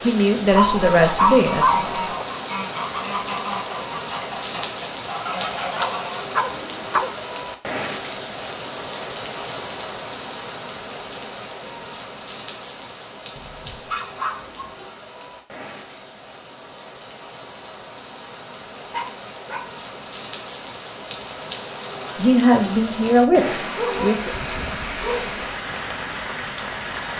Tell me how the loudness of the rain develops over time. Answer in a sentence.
The volume of the rain goes down, then up.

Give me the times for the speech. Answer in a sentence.
The speech can be heard from 0.0 to 1.8 s and from 22.1 to 24.4 s.